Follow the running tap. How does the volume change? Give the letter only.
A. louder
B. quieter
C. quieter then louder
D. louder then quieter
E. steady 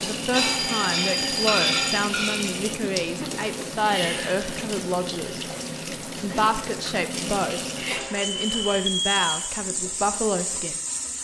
E.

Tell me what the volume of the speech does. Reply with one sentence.
The loudness of the speech stays about the same.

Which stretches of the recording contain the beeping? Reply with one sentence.
The beeping can be heard from 0.3 to 2.1 s and from 7.9 to 9.5 s.